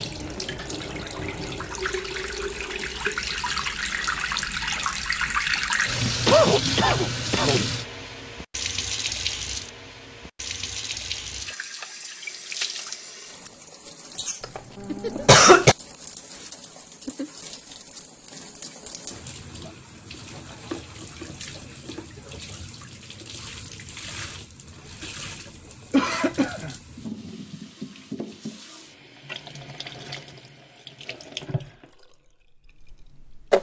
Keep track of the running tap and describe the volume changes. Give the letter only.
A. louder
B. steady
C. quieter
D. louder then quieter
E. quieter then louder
C.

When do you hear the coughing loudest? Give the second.
15 s.